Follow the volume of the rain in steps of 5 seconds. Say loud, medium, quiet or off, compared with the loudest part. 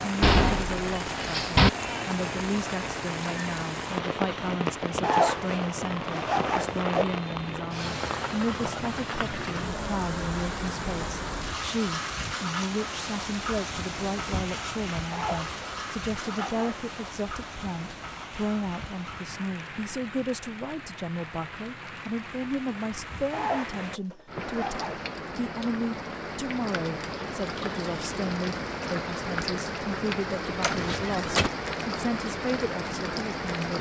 loud, loud, loud, medium, medium, loud, loud.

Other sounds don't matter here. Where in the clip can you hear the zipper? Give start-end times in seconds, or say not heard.
5.0-7.0, 15.1-16.9, 23.3-25.1.